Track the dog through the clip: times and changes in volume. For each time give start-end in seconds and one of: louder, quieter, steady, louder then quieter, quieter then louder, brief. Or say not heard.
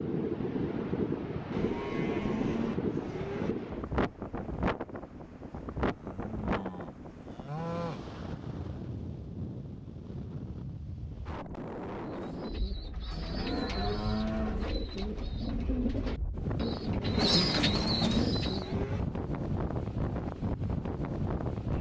not heard.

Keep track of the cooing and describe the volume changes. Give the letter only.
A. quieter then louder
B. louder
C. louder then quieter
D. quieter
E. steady
B.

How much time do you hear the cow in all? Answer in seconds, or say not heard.
8 s.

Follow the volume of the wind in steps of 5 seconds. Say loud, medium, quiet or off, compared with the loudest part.
loud, medium, medium, loud, loud.